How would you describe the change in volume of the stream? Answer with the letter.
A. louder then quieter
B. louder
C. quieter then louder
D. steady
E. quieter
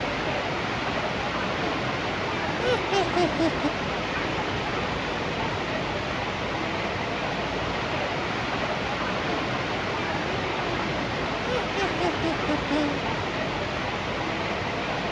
D.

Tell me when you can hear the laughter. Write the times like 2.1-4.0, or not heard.
2.5-3.7, 11.4-13.0.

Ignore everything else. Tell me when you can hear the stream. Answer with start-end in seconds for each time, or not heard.
0.0-15.0.